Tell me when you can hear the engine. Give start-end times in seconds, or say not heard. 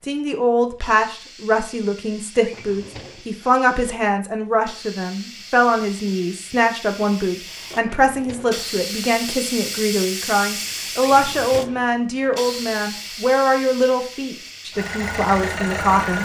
14.7-16.2.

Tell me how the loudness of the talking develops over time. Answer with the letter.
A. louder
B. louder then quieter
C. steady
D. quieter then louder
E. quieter
C.